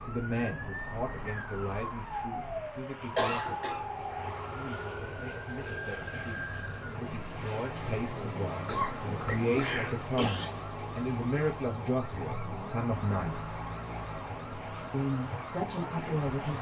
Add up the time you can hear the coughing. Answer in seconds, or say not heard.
3 s.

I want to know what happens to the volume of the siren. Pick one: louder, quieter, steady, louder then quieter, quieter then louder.
steady.